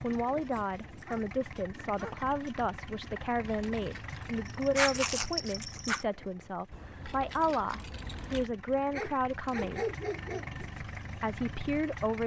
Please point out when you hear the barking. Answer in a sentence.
You can hear the barking from 0.5 to 2.2 s, from 4.3 to 6.0 s and from 8.9 to 10.7 s.